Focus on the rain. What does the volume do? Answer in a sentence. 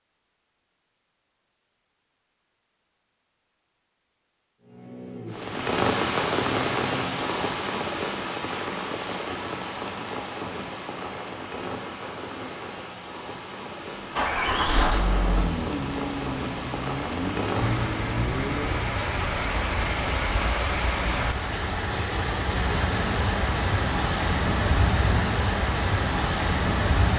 The loudness of the rain goes down, then up.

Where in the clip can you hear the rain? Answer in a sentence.
You can hear the rain from 5.3 to 27.1 s.